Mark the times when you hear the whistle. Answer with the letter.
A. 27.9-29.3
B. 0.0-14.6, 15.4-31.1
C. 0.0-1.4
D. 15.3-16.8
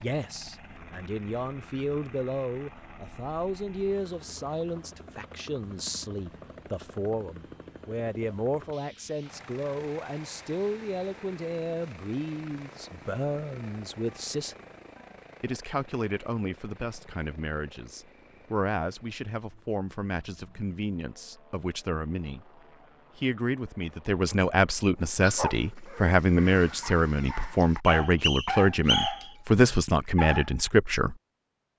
A.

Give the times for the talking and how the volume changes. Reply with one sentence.
You can hear the talking from 0.0 to 14.6 s, at a steady volume; and from 15.4 to 31.1 s, getting louder.